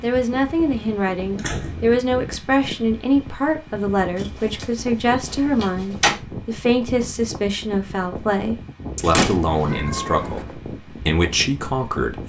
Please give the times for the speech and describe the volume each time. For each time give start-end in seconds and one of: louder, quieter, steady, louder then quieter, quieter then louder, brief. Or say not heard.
0.0-12.2 steady.